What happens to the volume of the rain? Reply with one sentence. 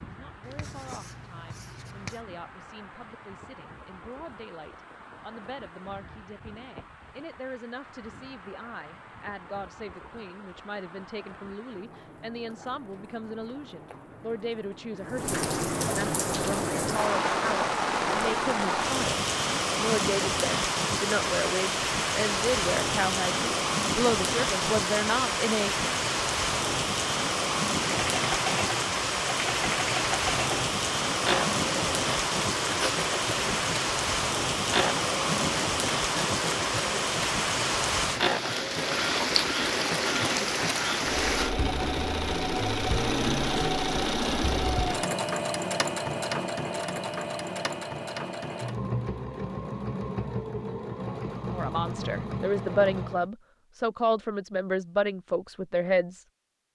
The volume of the rain goes up.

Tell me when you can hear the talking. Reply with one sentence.
The talking can be heard from 0.0 to 25.9 s and from 51.5 to 56.7 s.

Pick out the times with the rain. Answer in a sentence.
The rain can be heard from 0.0 to 41.5 s.